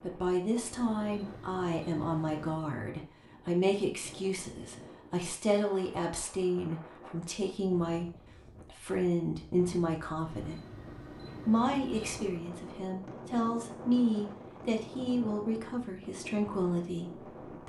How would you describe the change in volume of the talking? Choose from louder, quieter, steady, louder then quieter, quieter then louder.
steady.